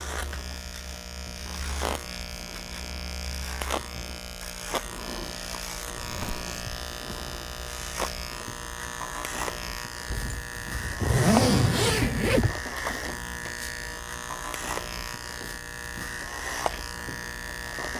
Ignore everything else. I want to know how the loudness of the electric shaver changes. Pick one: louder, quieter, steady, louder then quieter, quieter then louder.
steady.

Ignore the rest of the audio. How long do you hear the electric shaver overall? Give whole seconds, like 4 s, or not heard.
18 s.